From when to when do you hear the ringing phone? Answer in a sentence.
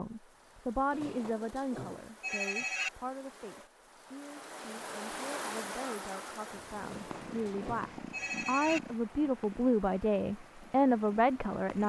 The ringing phone can be heard from 0.9 to 2.9 s and from 6.8 to 8.8 s.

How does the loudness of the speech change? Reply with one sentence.
The volume of the speech goes down, then up.